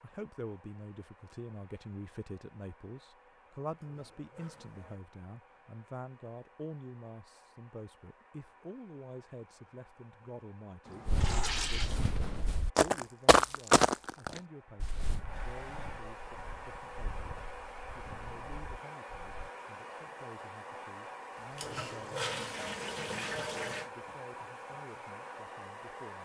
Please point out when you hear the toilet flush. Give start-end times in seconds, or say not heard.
3.7-5.0, 10.8-12.0, 21.5-23.9.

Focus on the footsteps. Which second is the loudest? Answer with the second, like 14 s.
14 s.